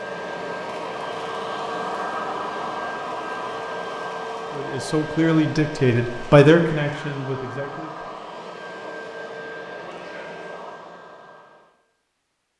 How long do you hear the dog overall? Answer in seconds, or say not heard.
not heard.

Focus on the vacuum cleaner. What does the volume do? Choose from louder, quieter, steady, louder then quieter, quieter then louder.
quieter.